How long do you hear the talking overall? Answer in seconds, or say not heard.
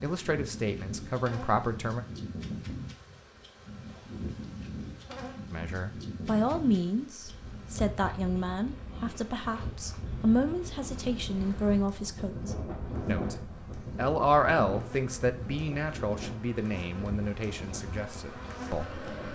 15 s.